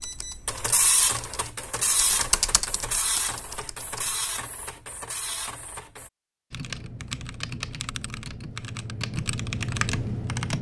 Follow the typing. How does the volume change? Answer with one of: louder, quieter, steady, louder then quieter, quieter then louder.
louder.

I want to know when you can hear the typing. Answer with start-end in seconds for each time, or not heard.
0.0-4.2, 6.5-10.5.